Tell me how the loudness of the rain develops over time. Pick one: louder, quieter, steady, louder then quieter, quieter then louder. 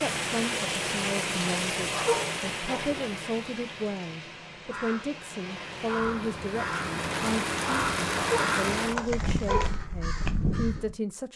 quieter then louder.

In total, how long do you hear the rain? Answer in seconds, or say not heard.
10 s.